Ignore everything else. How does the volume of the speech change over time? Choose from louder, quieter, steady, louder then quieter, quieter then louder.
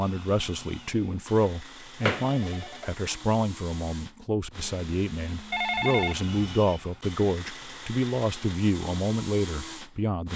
steady.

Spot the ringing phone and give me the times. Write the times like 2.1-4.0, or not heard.
2.0-2.9, 5.5-6.8.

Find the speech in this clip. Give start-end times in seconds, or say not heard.
0.0-10.3.